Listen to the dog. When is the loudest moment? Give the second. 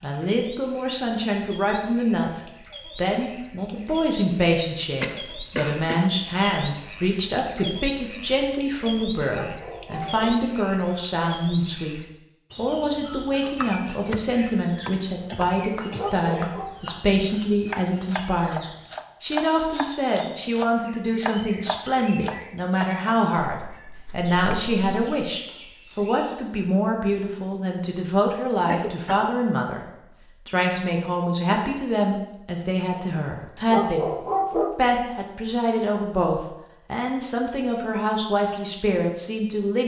34 s.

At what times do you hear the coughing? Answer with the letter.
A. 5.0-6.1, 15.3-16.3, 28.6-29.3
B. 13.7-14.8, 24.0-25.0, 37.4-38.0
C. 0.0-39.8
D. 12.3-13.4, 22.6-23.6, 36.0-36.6
A.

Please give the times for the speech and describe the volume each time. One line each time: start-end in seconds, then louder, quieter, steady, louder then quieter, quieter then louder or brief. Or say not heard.
0.0-39.8 steady.